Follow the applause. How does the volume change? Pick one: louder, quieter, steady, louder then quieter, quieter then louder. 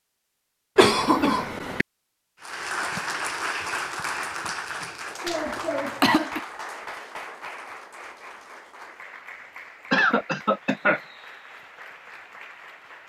quieter.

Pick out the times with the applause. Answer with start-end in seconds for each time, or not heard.
2.4-13.0.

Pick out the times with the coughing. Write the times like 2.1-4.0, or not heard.
0.8-1.9, 4.8-6.4, 9.9-11.0.